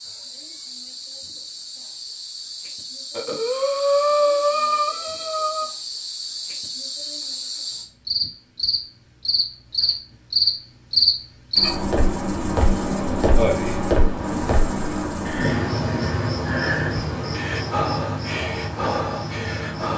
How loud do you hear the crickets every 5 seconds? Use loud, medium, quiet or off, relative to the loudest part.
quiet, medium, loud, medium.